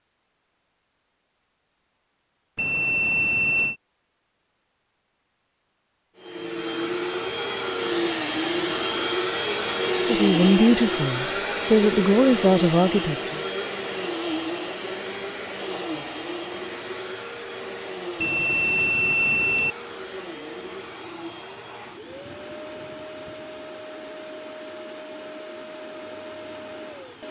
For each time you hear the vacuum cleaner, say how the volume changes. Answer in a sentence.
The vacuum cleaner can be heard from 6.2 to 27.2 s, getting quieter.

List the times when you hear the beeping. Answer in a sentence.
The beeping can be heard from 2.5 to 3.8 s and from 18.2 to 19.8 s.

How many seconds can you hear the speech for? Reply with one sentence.
You can hear the speech for 3 seconds altogether.